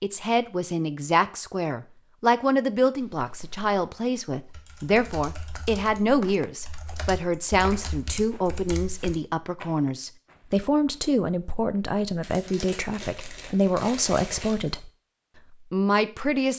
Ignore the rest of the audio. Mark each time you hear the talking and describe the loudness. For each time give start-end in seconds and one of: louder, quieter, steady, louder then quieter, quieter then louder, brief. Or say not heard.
0.0-14.9 steady
15.7-16.5 brief.